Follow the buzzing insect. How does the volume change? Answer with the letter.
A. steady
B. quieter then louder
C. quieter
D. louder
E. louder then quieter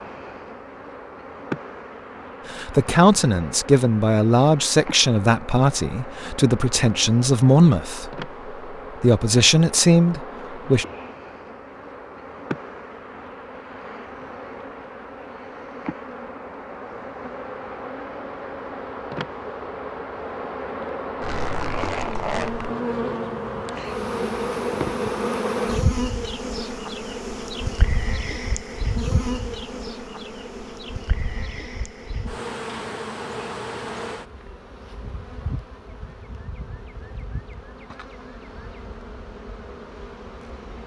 E.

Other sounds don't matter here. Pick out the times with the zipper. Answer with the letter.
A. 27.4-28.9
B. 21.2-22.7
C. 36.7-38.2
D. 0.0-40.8
B.